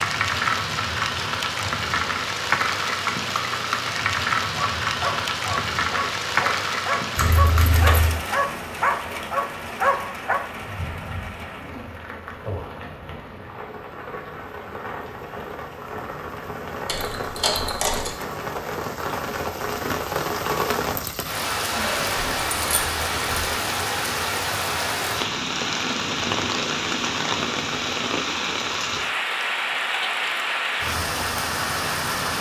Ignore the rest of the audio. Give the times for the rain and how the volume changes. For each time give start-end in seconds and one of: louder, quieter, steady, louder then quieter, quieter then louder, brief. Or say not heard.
0.0-32.3 quieter then louder.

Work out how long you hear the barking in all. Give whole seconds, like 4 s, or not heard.
6 s.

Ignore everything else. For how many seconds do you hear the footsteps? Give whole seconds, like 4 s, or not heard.
not heard.